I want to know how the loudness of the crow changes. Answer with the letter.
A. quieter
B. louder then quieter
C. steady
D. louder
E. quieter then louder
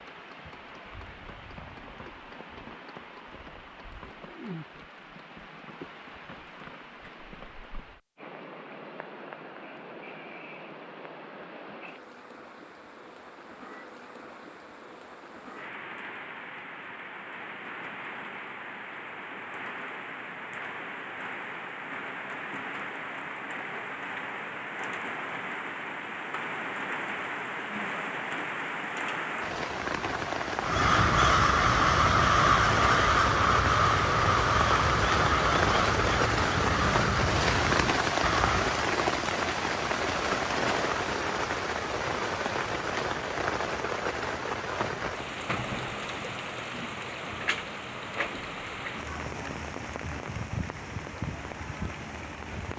A.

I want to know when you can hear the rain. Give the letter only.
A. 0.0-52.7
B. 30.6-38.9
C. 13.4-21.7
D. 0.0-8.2
A.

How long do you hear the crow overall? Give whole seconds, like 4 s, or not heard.
8 s.